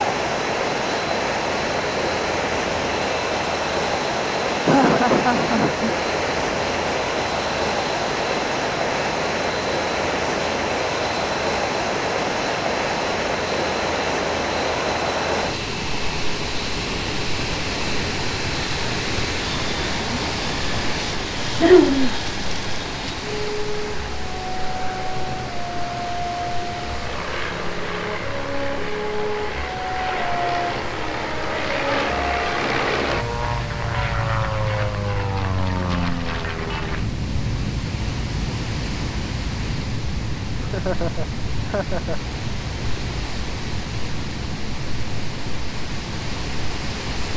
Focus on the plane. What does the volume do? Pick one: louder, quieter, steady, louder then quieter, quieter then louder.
louder then quieter.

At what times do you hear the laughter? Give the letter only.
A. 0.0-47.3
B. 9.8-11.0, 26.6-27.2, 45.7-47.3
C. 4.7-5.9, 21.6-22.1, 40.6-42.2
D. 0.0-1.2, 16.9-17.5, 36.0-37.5
C.